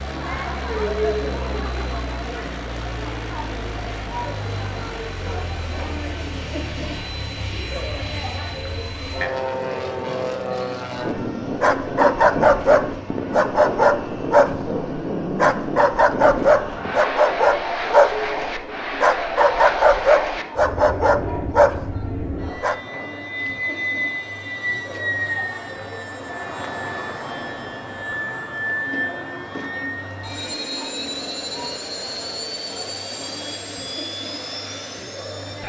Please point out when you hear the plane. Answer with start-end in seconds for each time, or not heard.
0.0-35.6.